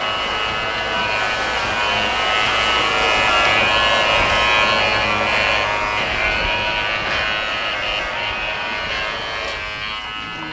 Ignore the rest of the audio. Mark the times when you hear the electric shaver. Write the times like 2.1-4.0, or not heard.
0.0-10.4.